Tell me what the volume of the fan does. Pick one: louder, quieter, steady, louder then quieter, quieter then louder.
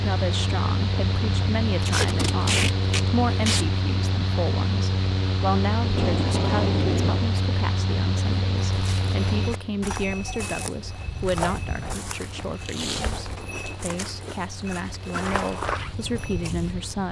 quieter.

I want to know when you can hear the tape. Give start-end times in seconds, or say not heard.
1.8-3.6, 5.8-7.3, 12.6-13.7.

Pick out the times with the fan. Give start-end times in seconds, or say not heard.
0.0-17.0.